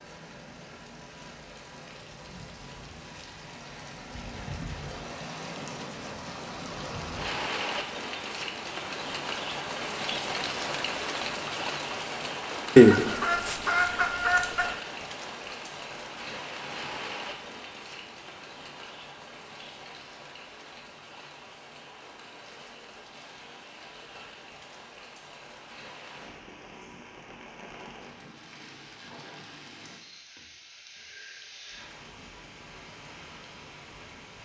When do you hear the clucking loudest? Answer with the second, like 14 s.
13 s.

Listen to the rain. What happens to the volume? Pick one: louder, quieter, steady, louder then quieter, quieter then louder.
louder then quieter.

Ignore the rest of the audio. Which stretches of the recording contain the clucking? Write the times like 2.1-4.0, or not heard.
12.8-14.7.